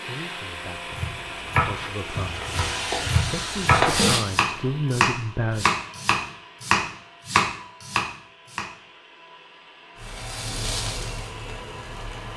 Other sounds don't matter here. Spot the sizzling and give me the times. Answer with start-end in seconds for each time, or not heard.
0.0-4.2, 9.9-12.3.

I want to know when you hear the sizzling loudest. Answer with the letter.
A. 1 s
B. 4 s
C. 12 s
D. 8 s
B.